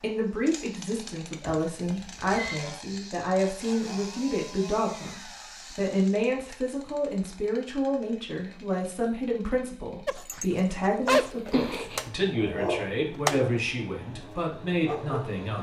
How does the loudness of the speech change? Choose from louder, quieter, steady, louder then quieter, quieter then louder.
steady.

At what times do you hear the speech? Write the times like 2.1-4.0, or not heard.
0.0-15.5.